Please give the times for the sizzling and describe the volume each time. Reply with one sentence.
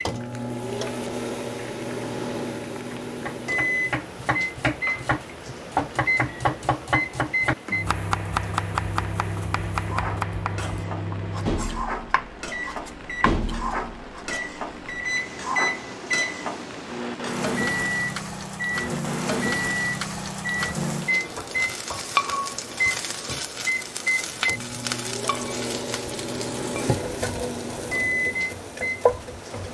The sizzling can be heard from 0.0 to 29.6 s, getting louder.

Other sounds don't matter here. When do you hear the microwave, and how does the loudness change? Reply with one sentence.
The microwave can be heard from 0.0 to 29.6 s, at a steady volume.